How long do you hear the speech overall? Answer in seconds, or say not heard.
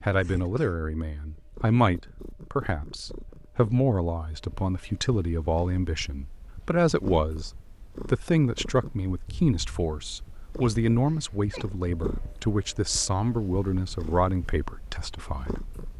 15 s.